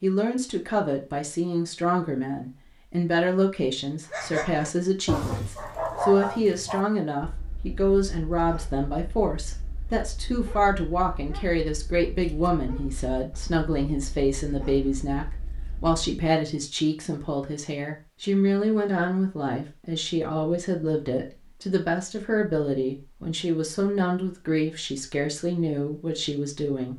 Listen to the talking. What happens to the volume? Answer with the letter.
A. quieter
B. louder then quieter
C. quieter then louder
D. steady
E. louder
D.